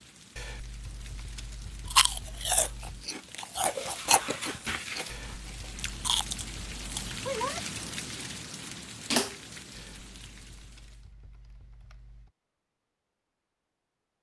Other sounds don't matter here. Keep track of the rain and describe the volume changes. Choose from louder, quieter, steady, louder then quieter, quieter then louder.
louder then quieter.